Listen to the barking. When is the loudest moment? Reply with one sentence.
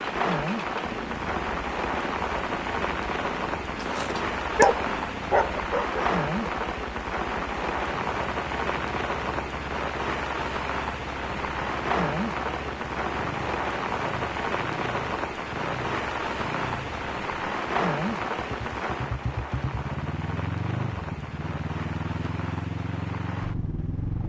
The loudest moment of the barking is at 5 seconds.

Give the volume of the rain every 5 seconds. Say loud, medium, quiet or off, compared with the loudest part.
loud, loud, loud, loud, medium.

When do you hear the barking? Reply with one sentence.
You can hear the barking from 3.8 to 6.5 s.